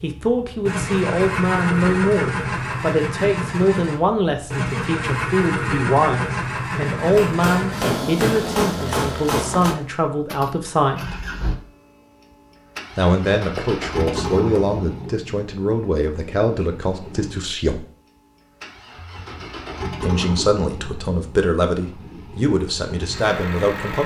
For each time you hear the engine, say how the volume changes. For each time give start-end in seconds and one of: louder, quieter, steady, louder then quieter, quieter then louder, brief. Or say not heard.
0.0-24.0 quieter.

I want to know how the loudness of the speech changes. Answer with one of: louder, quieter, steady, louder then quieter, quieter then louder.
steady.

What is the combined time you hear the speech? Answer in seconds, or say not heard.
20 s.